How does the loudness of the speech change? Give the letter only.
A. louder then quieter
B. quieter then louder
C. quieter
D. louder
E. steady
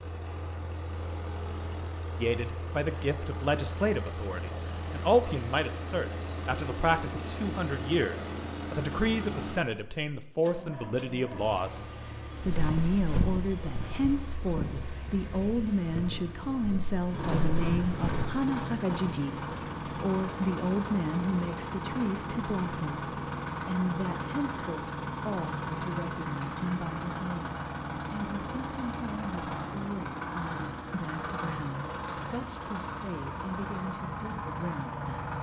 C.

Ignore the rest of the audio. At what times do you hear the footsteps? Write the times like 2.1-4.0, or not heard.
12.4-18.4.